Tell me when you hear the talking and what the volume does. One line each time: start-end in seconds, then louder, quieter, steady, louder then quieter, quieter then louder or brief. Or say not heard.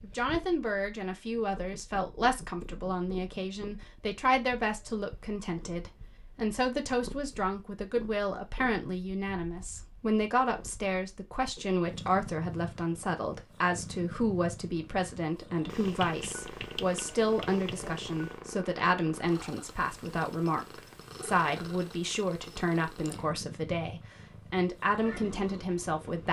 0.0-26.2 steady.